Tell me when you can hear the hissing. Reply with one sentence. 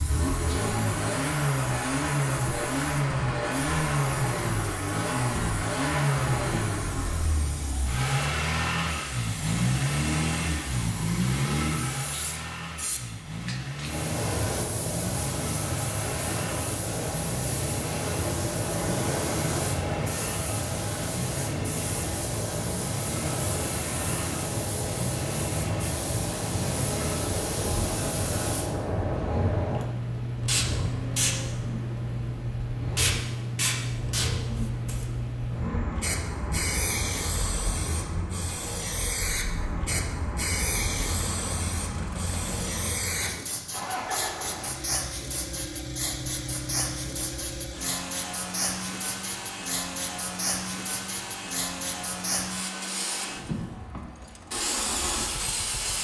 The hissing can be heard from 0.0 to 55.9 s.